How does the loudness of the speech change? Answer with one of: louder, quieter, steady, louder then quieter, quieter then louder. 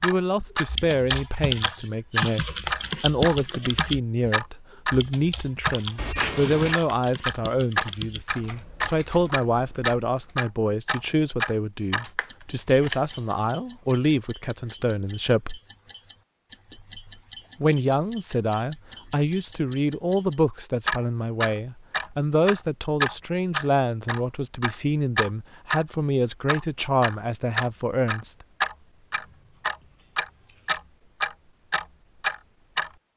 steady.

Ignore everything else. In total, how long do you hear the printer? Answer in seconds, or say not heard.
not heard.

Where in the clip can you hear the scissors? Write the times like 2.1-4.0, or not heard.
6.0-6.8, 12.0-13.2, 29.1-30.8.